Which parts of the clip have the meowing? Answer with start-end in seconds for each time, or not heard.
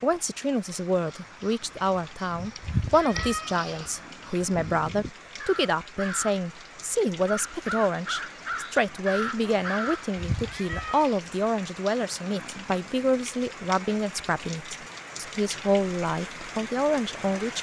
2.6-3.9, 10.2-11.2.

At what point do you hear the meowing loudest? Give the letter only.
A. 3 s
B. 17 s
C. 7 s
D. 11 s
A.